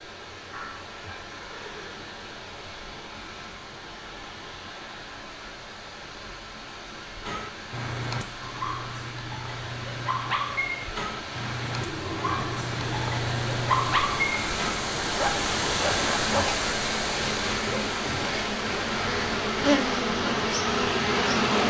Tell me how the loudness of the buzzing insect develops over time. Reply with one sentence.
The loudness of the buzzing insect goes up.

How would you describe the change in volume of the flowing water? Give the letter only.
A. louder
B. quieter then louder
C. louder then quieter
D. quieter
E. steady
A.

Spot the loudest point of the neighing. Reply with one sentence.
The volume of the neighing peaks at 12 seconds.